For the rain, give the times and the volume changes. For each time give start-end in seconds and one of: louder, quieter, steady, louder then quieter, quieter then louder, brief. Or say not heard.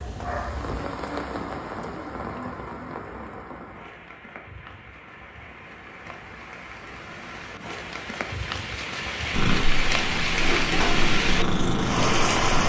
0.0-12.6 quieter then louder.